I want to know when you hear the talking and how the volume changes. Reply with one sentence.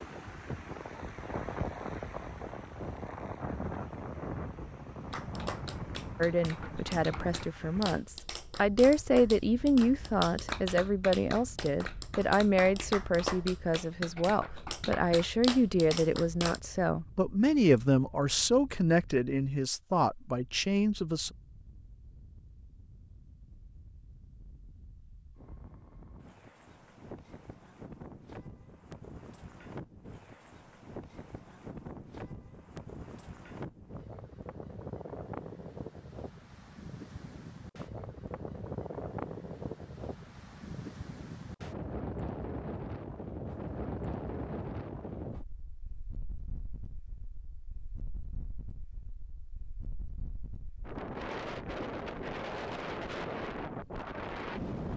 You can hear the talking from 6.2 to 21.3 s, at a steady volume.